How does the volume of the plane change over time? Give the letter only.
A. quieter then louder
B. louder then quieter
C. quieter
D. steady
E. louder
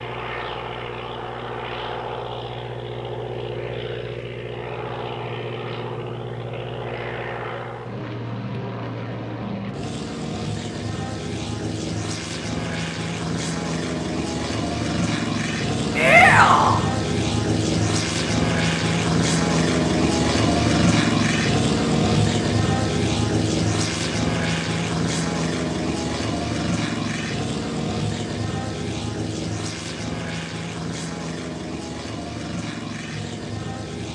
B.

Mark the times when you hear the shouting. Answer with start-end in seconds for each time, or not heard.
15.9-16.8.